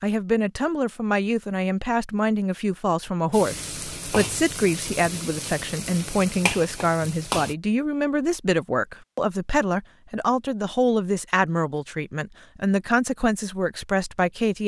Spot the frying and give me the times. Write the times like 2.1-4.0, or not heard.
3.3-7.5.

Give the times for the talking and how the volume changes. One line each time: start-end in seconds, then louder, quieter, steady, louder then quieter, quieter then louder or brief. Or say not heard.
0.0-14.6 steady.